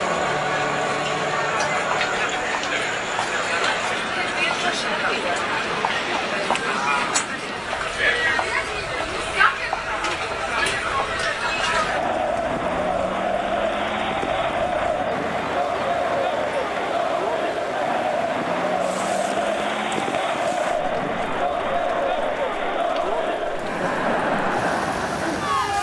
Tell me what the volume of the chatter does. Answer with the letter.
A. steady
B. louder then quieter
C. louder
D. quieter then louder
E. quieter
A.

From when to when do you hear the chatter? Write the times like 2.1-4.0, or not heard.
0.0-25.7.